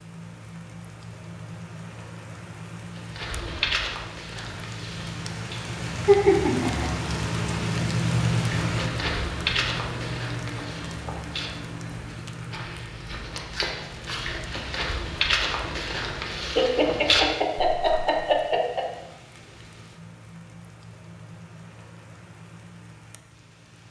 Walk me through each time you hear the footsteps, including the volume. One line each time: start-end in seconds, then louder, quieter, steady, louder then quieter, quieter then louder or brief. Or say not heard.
2.9-5.7 brief
8.6-18.1 quieter then louder.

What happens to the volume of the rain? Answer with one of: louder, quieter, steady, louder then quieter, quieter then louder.
louder then quieter.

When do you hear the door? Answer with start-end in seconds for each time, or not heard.
not heard.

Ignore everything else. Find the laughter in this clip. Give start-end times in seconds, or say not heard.
6.0-6.9, 16.6-18.9.